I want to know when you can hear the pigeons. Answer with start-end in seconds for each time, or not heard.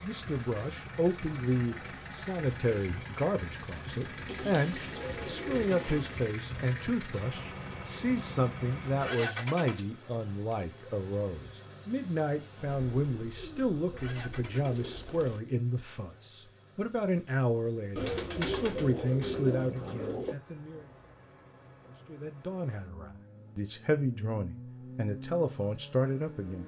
4.2-6.3, 12.7-15.4, 17.9-20.4.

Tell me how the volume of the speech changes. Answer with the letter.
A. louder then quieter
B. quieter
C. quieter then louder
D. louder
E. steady
E.